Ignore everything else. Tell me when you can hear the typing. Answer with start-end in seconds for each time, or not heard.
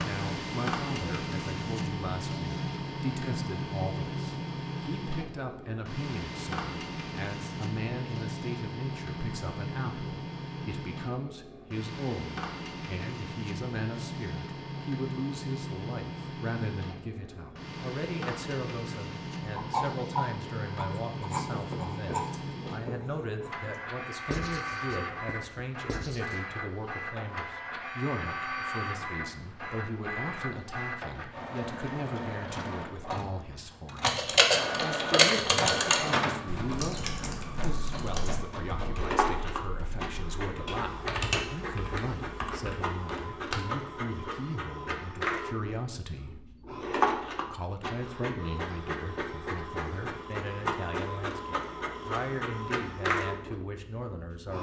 34.0-43.6.